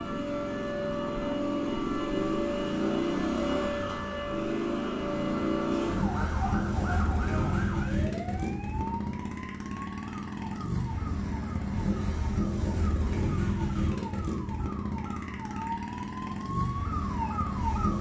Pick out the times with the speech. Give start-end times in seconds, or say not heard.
not heard.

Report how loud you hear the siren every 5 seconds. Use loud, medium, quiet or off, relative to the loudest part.
loud, loud, medium, loud.